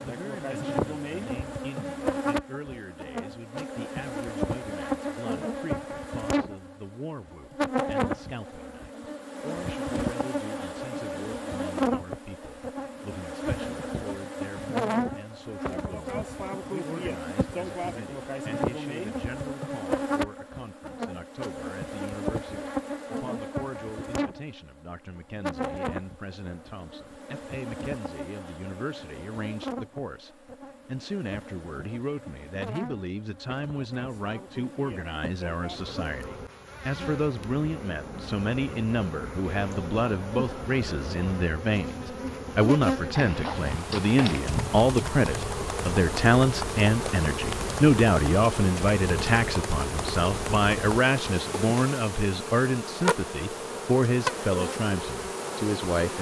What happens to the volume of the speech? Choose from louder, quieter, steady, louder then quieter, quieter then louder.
louder.